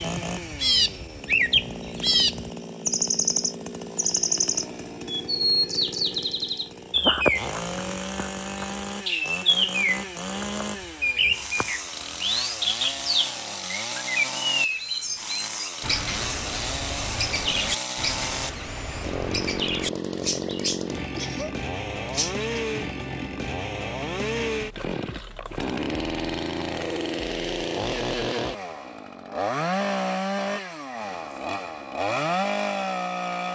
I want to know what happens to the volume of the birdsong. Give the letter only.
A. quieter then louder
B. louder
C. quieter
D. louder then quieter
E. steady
C.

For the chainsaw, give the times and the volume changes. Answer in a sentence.
You can hear the chainsaw from 0.0 to 33.5 s, getting louder.